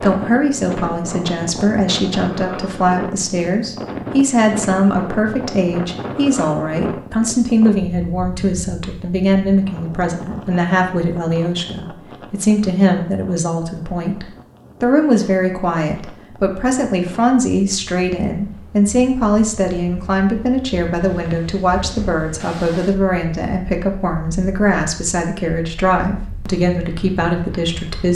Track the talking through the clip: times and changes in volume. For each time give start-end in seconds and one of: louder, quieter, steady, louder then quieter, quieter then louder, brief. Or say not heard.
0.0-28.0 steady.